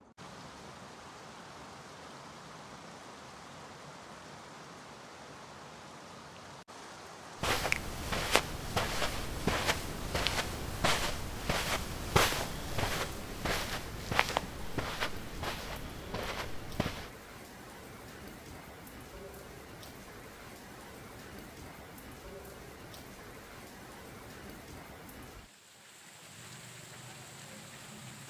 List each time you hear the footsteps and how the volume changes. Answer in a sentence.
The footsteps can be heard from 7.4 to 17.1 s, getting quieter.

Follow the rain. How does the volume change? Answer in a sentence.
The volume of the rain stays about the same.